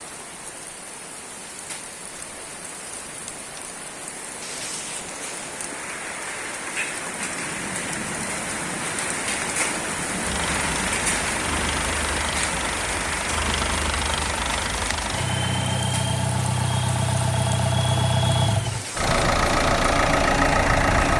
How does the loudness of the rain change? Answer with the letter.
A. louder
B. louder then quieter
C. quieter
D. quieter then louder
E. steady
B.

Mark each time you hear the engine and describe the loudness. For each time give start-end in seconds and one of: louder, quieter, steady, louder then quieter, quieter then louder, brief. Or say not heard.
10.2-21.1 louder.